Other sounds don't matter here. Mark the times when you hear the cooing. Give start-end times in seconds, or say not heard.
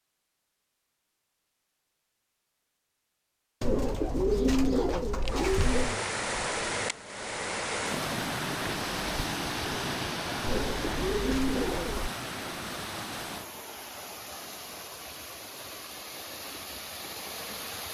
3.6-6.0, 10.4-12.1.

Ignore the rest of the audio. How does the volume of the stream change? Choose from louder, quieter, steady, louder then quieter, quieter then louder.
quieter.